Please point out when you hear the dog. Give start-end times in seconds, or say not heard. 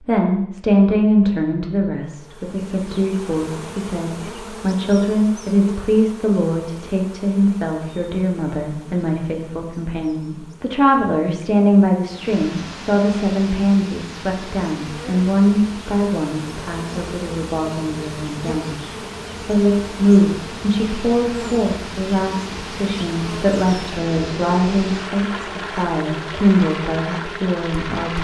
not heard.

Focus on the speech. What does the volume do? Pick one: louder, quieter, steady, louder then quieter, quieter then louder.
steady.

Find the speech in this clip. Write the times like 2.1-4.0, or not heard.
0.1-28.1.